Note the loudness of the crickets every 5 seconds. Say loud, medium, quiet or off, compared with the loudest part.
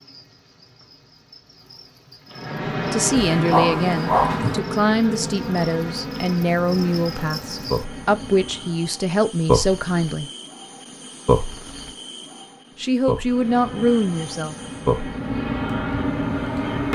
quiet, loud, loud, quiet.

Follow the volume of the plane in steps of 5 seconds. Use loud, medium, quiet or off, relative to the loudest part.
loud, medium, medium, loud.